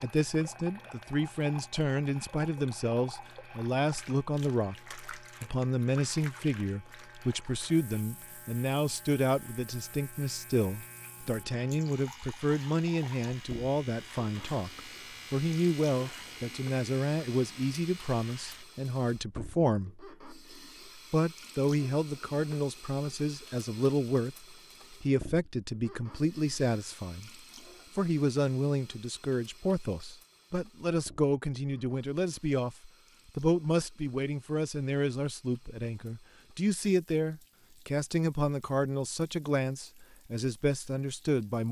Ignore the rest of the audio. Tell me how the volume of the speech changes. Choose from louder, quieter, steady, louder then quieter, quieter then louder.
steady.